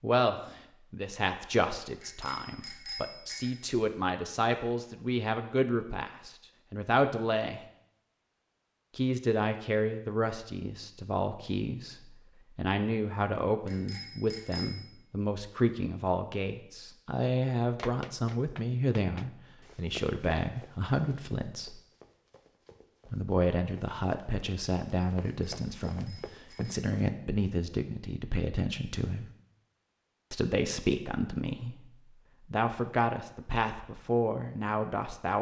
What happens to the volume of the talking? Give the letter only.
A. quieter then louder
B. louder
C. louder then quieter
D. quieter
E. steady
E.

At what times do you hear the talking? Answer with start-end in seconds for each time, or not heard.
0.0-7.7, 8.9-21.8, 23.1-29.3, 30.3-35.3.